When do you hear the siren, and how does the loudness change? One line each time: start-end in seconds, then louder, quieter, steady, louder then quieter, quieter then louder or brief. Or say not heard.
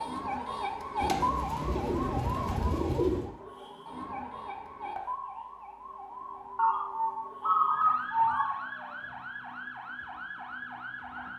0.0-11.3 quieter.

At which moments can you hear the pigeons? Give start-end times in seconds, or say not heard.
1.0-3.3, 6.5-8.6.